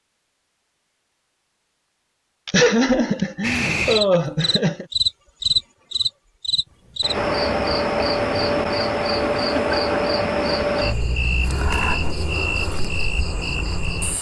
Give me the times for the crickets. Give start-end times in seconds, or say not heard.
3.4-14.1.